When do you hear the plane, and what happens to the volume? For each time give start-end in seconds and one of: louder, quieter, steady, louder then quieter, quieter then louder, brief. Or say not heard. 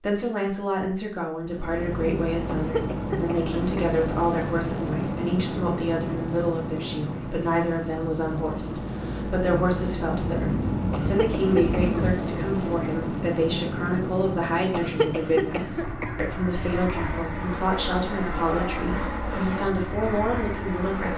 1.4-21.1 steady.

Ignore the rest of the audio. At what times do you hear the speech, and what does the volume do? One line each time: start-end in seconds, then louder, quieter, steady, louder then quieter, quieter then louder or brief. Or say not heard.
0.0-21.1 steady.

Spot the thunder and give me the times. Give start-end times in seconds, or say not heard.
10.1-12.2.